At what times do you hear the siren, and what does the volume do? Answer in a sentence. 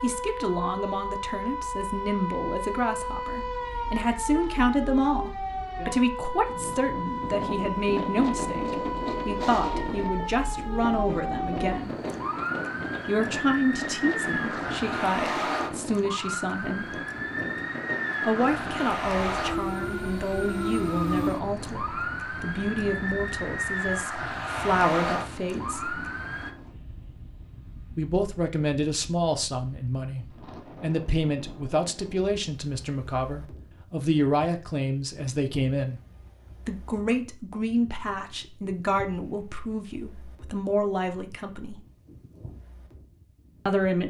You can hear the siren from 0.0 to 26.6 s, at a steady volume.